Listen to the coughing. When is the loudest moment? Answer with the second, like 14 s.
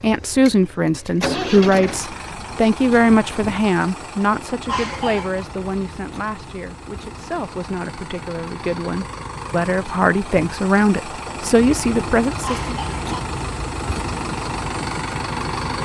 5 s.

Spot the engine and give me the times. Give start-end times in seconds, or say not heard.
0.0-15.8.